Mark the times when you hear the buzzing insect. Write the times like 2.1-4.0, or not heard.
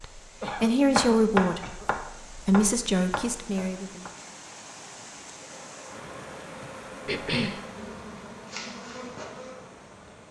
5.3-10.2.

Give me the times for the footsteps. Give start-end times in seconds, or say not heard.
not heard.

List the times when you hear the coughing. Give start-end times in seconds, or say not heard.
0.4-1.9, 7.0-7.6.